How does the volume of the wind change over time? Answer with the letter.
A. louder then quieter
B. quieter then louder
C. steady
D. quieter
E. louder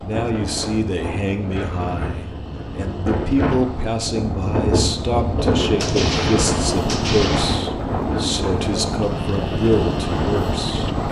A.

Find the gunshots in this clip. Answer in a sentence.
The gunshots can be heard from 5.8 to 7.7 s.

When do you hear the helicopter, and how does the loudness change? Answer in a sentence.
The helicopter can be heard from 0.0 to 11.0 s, getting louder.